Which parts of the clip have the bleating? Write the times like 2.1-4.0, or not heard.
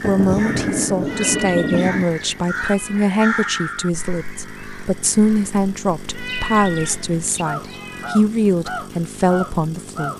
not heard.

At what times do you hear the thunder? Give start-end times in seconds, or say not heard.
0.0-2.0.